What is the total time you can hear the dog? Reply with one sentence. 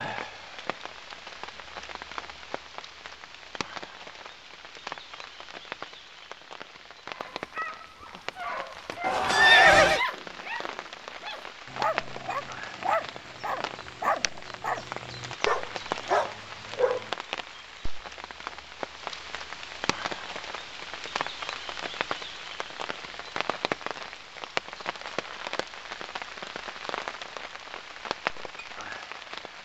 The dog can be heard for 10 seconds in total.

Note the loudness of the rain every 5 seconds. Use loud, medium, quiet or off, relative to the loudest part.
medium, medium, loud, loud, loud, loud.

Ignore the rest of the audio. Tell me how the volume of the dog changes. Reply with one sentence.
The volume of the dog goes up.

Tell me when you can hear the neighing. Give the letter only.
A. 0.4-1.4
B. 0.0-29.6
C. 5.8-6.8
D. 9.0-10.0
D.